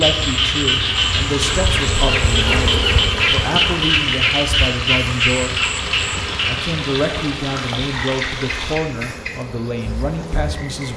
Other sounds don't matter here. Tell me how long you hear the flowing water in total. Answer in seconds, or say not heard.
9 s.